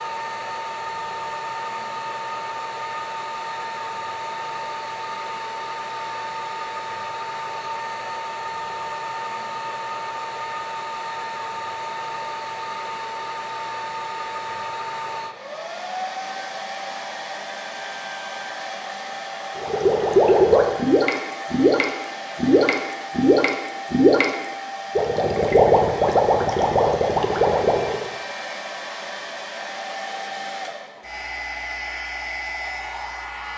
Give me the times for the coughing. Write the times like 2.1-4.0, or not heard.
not heard.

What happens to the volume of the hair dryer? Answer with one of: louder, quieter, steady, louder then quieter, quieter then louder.
steady.